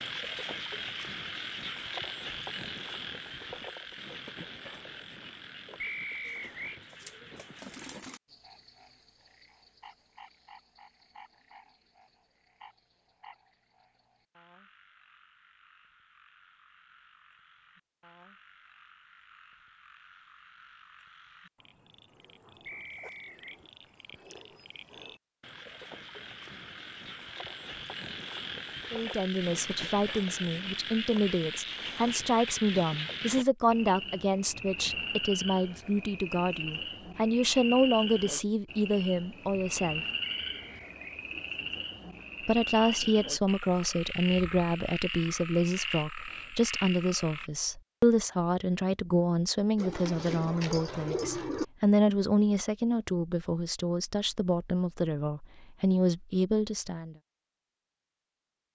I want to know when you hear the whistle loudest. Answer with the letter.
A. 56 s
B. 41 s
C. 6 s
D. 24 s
C.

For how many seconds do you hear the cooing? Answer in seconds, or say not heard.
4 s.